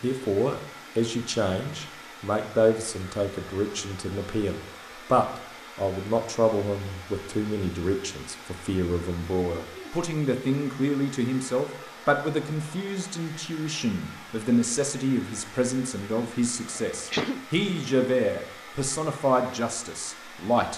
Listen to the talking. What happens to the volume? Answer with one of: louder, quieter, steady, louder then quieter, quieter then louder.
steady.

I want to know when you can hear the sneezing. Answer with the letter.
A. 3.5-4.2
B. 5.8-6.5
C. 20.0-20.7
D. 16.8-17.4
D.